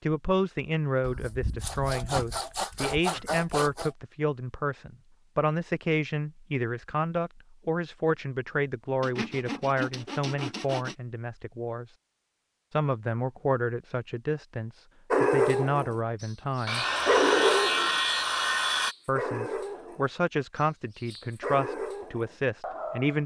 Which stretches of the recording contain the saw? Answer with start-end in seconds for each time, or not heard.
1.0-3.9, 9.0-10.9, 16.6-18.9.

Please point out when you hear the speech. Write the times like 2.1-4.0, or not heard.
0.0-11.8, 12.7-16.9, 19.1-23.2.